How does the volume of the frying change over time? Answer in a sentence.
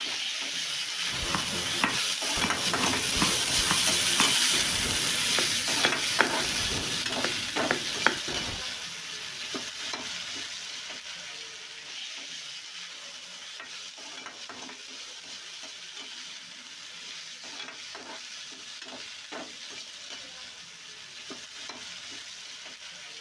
The volume of the frying goes down.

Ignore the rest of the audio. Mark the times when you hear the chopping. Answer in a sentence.
You can hear the chopping from 1.1 to 8.7 s.